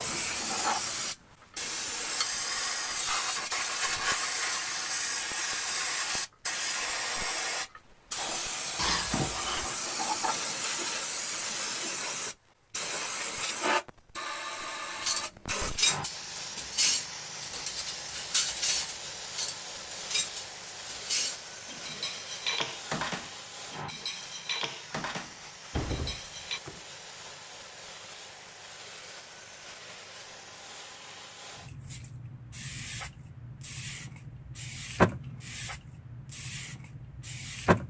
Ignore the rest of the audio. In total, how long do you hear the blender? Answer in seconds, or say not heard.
not heard.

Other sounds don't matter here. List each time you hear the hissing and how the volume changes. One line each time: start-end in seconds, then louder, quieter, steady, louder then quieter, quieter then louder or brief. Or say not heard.
0.0-37.8 quieter then louder.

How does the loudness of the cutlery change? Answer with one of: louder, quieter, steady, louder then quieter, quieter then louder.
quieter.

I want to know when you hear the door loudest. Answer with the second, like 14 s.
9 s.